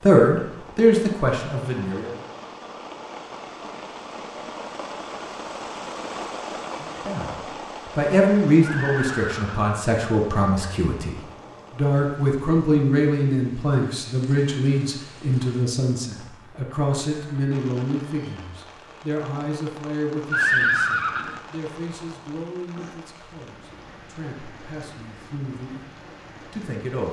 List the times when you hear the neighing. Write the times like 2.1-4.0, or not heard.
8.7-9.6, 20.3-21.4.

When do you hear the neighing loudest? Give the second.
21 s.